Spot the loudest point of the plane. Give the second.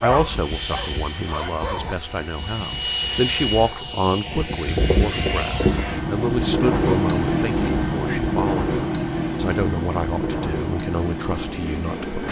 7 s.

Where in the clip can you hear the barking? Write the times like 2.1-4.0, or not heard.
0.0-1.9.